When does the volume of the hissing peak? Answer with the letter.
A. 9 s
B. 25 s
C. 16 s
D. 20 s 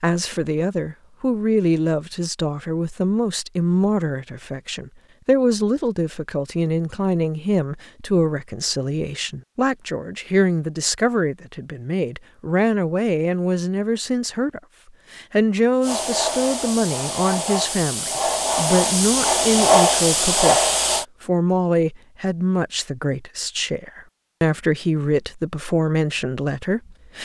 D.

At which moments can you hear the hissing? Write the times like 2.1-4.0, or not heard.
15.8-21.1.